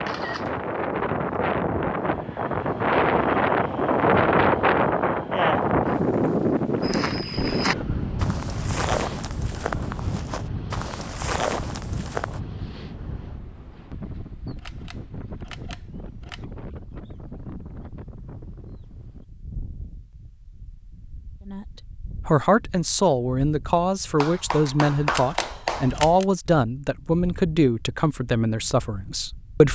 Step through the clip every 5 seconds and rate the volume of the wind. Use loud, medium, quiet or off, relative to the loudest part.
loud, loud, quiet, quiet, quiet, quiet.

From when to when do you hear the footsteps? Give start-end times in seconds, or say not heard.
6.8-12.4.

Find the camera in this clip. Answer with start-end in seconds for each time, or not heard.
0.0-0.6, 14.6-16.4, 25.1-26.2.